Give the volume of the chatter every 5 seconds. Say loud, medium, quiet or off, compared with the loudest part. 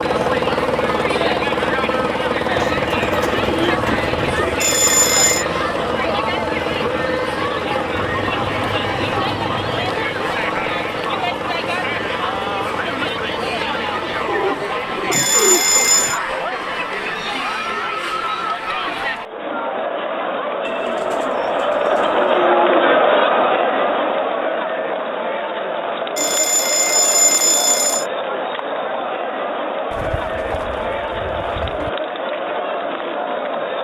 medium, medium, medium, medium, loud, medium, medium.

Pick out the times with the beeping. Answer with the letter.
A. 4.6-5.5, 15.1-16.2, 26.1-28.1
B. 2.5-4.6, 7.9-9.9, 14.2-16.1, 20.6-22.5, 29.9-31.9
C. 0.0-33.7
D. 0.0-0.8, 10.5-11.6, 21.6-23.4
A.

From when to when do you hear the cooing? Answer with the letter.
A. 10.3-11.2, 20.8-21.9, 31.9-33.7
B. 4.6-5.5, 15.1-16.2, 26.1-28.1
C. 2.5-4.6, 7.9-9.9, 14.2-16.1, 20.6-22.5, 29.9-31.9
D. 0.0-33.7
C.